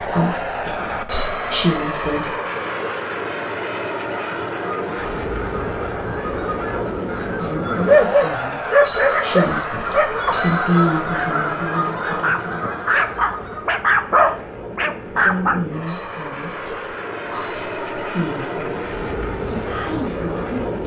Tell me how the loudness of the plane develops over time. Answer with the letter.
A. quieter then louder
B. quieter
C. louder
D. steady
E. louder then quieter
A.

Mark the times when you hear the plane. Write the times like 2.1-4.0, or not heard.
0.0-20.8.